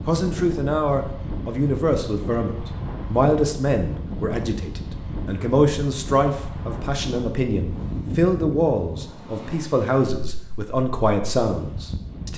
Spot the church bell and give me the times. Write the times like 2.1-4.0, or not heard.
not heard.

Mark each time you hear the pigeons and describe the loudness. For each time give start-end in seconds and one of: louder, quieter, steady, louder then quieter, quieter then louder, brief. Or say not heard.
not heard.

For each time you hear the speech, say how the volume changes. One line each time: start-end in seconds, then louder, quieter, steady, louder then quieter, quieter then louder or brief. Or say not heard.
0.1-12.3 steady.